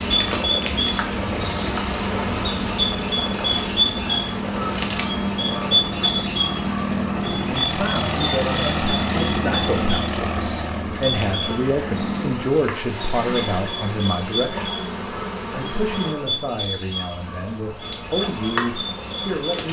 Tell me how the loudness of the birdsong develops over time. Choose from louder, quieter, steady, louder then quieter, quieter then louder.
quieter.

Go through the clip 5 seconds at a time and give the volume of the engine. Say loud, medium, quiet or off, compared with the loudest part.
medium, loud, loud, off.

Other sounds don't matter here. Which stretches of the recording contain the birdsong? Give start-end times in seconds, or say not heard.
0.0-19.6.